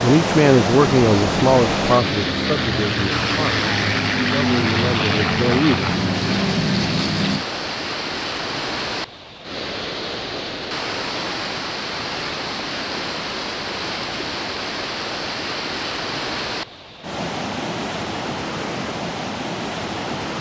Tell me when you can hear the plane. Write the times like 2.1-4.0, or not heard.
0.2-7.5.